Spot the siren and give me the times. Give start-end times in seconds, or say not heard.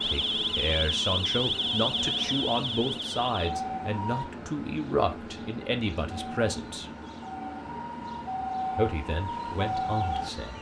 0.0-4.2, 6.1-10.5.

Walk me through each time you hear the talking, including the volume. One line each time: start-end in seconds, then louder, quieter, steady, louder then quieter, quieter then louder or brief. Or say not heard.
0.0-6.9 steady
8.7-10.5 brief.